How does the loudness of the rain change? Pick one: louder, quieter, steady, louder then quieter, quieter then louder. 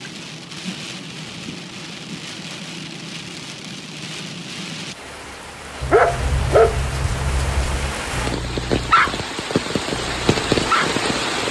louder.